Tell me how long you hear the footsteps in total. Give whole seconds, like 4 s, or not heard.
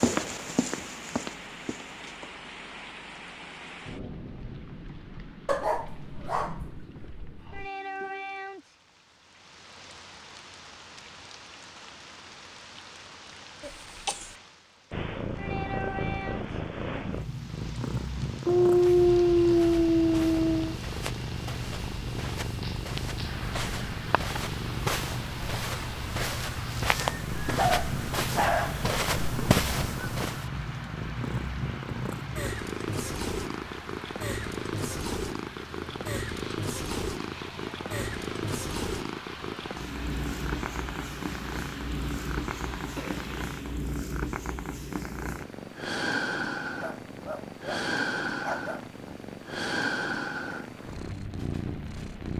14 s.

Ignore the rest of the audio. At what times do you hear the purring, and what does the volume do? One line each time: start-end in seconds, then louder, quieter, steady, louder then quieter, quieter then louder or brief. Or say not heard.
14.9-52.3 steady.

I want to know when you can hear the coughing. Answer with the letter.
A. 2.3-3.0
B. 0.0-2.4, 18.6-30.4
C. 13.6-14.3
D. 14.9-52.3
C.